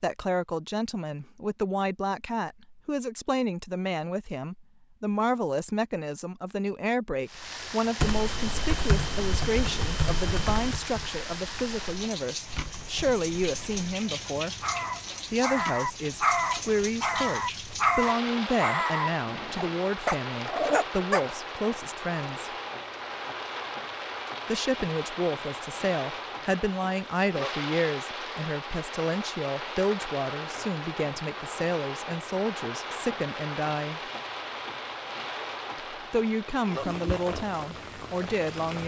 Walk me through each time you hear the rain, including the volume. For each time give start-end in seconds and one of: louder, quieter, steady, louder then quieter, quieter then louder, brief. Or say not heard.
7.2-38.8 steady.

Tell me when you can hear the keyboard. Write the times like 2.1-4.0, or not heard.
8.0-13.8.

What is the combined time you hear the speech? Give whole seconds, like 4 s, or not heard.
34 s.